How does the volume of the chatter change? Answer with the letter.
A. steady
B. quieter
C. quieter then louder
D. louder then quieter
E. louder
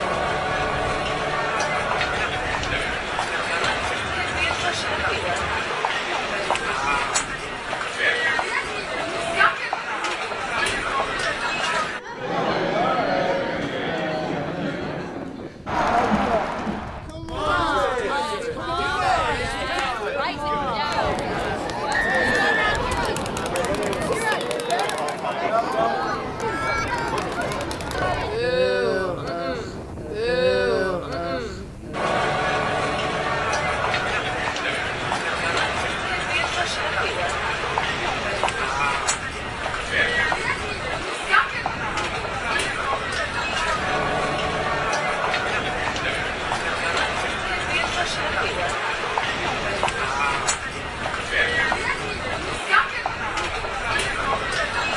A.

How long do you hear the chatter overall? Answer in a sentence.
The chatter can be heard for 55 seconds in total.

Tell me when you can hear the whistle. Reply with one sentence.
The whistle can be heard from 21.9 to 22.8 s.